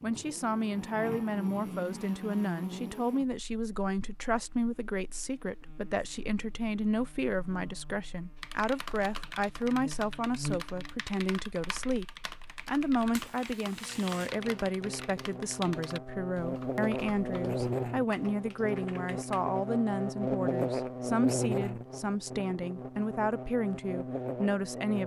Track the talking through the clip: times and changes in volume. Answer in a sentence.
The talking can be heard from 0.0 to 25.0 s, at a steady volume.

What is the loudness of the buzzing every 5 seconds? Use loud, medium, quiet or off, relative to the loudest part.
medium, quiet, medium, loud, loud.